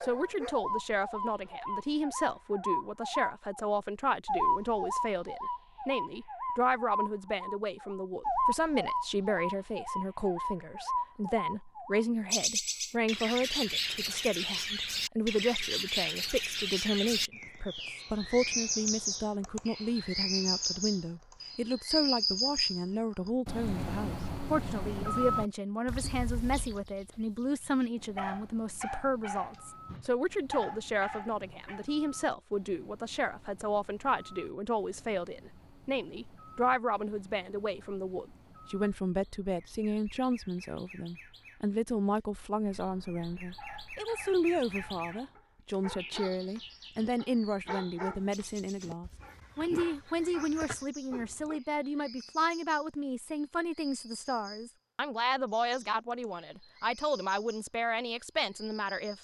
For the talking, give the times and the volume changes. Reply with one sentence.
The talking can be heard from 0.0 to 59.1 s, at a steady volume.